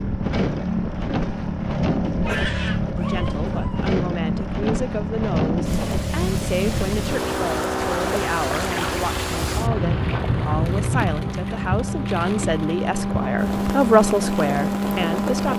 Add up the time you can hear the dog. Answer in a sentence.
The dog can be heard for 2 seconds in total.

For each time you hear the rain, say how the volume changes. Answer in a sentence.
The rain can be heard from 5.7 to 15.5 s, getting louder then quieter.